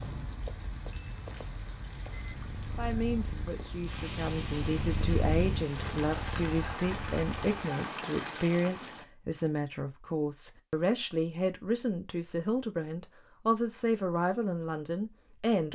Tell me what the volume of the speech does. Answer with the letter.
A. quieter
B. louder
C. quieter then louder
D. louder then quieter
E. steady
E.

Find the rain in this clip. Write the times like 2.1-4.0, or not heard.
0.0-9.1.